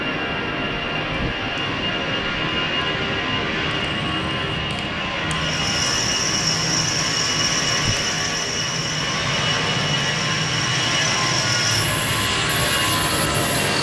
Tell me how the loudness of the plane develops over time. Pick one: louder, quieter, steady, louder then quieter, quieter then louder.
steady.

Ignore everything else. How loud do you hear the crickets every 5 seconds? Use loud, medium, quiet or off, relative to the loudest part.
off, loud, loud.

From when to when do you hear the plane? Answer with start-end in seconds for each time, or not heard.
0.0-13.7.